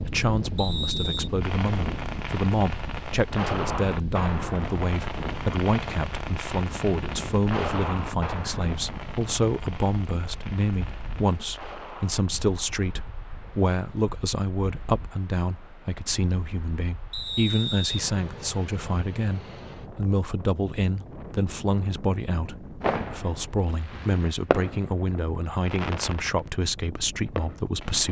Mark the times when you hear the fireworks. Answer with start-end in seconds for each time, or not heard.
1.4-12.2, 22.8-28.0.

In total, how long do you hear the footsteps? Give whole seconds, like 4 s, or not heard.
not heard.